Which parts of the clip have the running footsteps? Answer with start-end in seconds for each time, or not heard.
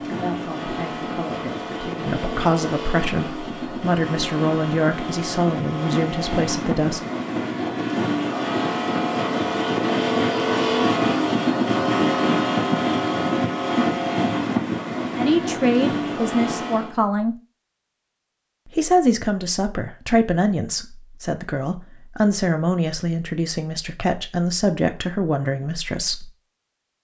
not heard.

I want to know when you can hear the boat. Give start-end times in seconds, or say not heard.
0.0-16.9.